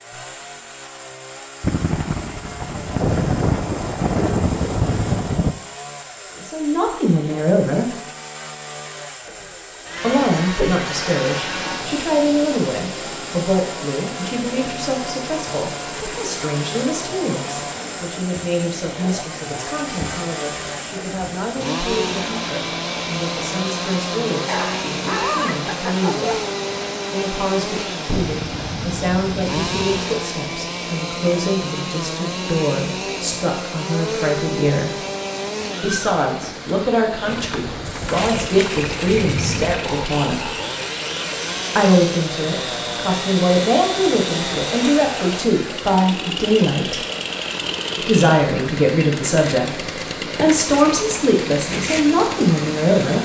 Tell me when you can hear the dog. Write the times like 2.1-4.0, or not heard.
24.4-26.4.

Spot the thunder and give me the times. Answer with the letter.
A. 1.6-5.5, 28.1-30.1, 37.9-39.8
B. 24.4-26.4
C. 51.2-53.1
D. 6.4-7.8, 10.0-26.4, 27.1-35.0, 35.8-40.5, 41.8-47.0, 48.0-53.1
A.